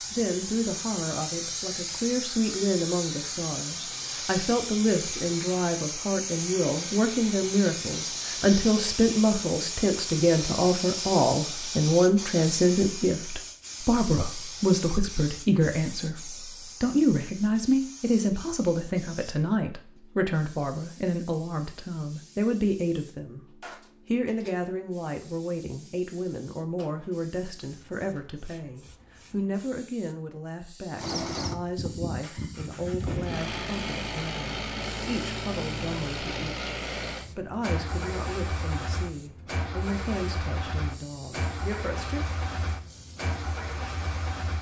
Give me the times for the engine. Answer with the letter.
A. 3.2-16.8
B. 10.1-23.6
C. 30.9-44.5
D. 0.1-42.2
C.